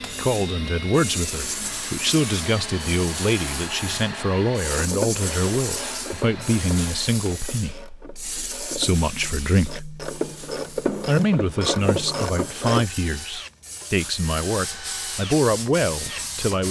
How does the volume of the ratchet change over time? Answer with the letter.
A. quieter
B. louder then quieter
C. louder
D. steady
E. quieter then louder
E.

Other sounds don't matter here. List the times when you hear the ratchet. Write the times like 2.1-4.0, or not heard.
4.7-12.8.